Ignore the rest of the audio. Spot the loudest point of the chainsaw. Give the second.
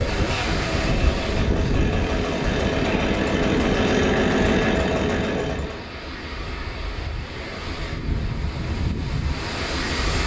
4 s.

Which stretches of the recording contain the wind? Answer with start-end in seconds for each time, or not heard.
0.0-10.2.